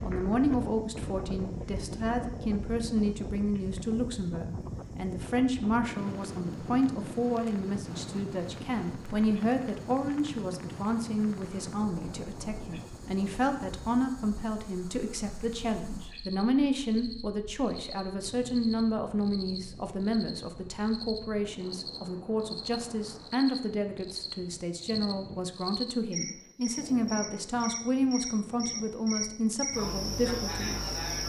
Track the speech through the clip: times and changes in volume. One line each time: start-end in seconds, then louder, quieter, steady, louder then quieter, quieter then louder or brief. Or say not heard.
0.0-30.8 steady.